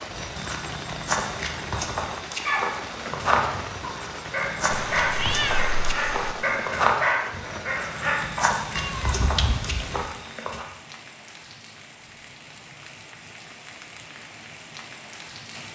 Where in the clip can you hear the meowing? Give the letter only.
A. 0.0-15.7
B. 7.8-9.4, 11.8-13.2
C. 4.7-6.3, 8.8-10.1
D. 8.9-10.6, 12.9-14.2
C.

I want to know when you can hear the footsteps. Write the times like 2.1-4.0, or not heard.
0.1-10.7.